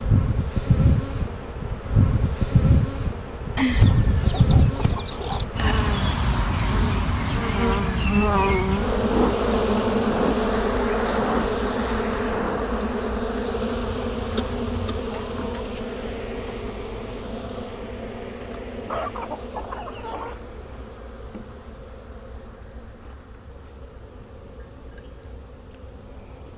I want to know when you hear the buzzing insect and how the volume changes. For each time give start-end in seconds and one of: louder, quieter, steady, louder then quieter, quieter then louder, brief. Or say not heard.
0.0-26.5 quieter.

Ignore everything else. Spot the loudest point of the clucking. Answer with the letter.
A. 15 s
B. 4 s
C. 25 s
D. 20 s
B.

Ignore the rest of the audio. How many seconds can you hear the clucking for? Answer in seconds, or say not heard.
5 s.